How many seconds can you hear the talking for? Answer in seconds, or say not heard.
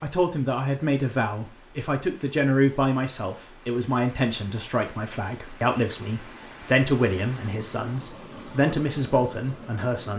10 s.